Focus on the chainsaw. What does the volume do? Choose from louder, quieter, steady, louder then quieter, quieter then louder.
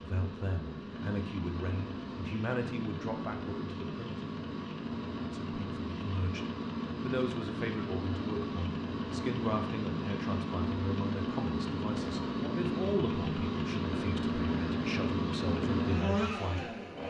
louder.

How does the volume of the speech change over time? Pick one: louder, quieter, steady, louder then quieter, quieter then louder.
steady.